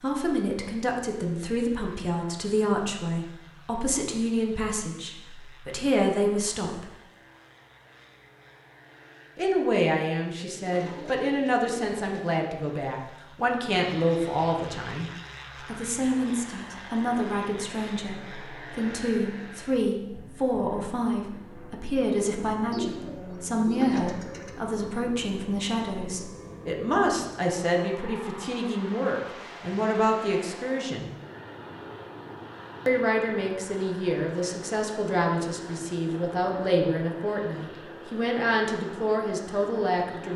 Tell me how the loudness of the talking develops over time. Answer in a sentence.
The volume of the talking stays about the same.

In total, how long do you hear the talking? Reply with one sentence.
You can hear the talking for 36 seconds altogether.